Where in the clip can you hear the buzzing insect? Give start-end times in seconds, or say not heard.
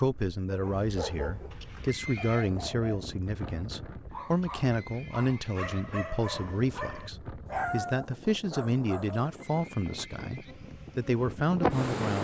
10.4-12.1.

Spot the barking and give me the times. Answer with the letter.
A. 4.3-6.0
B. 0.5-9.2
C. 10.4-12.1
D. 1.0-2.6
B.